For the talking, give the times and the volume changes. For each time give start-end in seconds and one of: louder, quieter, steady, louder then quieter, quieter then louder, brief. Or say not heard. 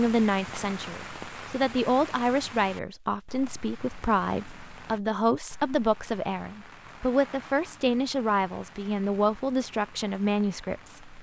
0.0-11.1 steady.